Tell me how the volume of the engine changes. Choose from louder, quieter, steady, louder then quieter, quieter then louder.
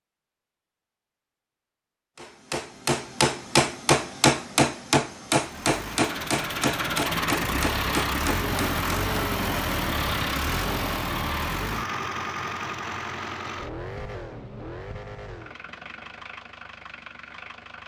quieter.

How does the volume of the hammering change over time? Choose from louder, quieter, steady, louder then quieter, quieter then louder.
quieter.